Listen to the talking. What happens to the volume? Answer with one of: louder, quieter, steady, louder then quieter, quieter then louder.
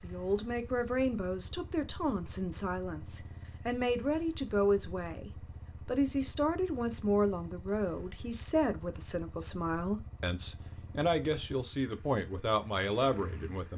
steady.